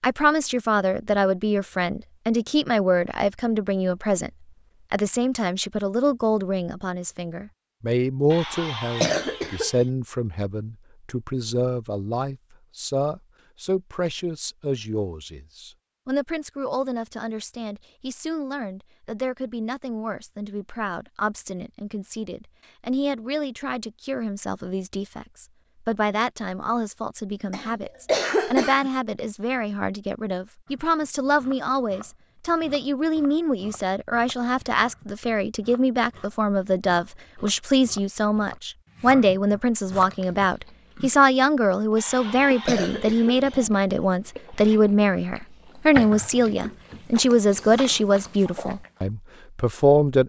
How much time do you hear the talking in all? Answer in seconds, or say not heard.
50 s.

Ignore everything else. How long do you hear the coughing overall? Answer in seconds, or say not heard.
5 s.